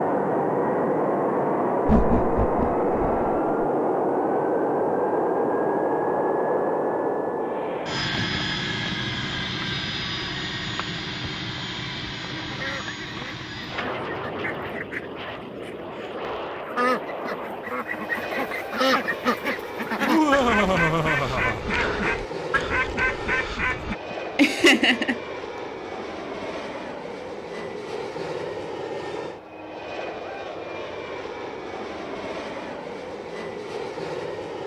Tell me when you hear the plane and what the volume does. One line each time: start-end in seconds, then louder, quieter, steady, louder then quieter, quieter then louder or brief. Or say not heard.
0.0-34.6 quieter.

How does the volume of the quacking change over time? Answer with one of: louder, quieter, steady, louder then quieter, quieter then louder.
louder.